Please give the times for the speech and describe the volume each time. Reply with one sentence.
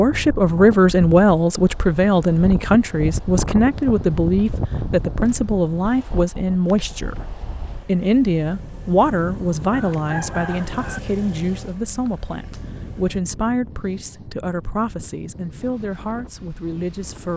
The speech can be heard from 0.0 to 17.3 s, getting quieter.